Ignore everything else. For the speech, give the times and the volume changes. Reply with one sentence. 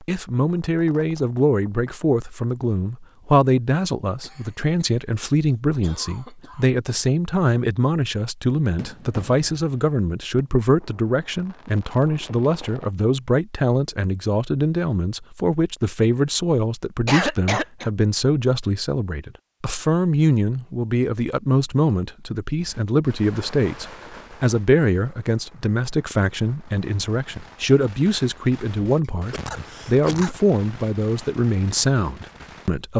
You can hear the speech from 0.0 to 32.9 s, at a steady volume.